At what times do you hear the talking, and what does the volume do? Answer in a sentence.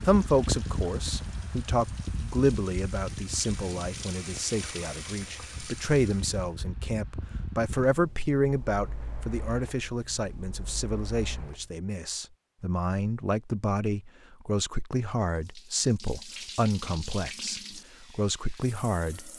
You can hear the talking from 0.0 to 19.3 s, at a steady volume.